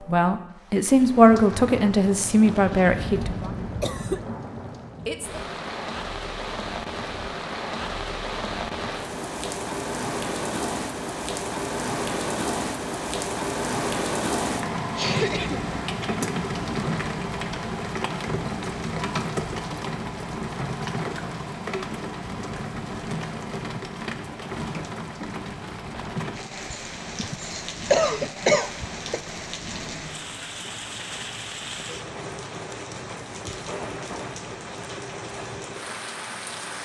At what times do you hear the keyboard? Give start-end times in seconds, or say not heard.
not heard.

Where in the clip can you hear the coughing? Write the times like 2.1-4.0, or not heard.
2.9-4.2, 14.9-16.2, 26.7-29.2.